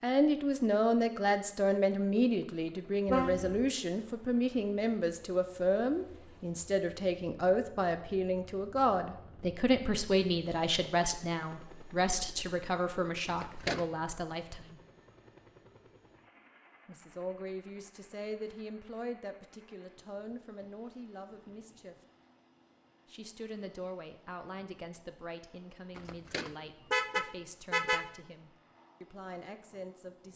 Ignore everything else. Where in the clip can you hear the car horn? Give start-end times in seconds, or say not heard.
3.0-3.7, 13.2-13.8, 25.9-28.1.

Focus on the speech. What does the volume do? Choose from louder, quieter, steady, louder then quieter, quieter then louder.
quieter.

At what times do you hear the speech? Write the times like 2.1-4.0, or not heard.
0.0-14.8, 16.9-21.9, 23.1-30.3.